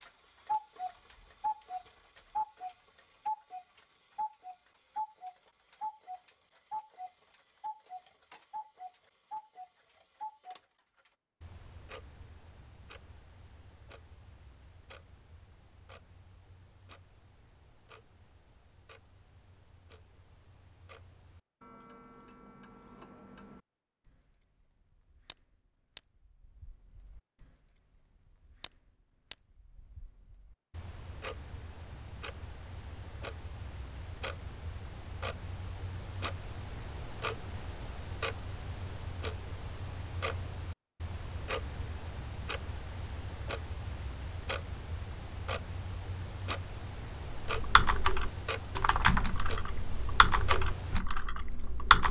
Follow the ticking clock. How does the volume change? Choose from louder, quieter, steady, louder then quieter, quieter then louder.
quieter then louder.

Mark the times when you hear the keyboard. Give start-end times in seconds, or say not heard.
47.5-52.0.